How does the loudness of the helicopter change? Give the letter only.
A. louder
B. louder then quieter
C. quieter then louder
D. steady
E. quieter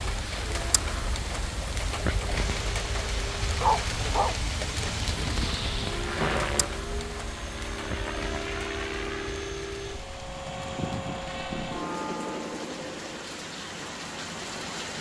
A.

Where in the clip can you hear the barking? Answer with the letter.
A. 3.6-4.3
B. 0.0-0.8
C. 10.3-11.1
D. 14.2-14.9
A.